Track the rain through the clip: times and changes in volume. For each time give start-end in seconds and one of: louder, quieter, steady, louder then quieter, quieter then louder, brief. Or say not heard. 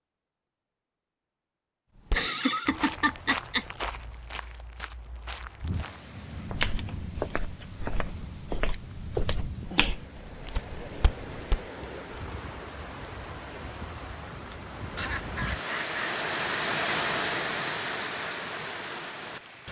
5.7-19.6 louder.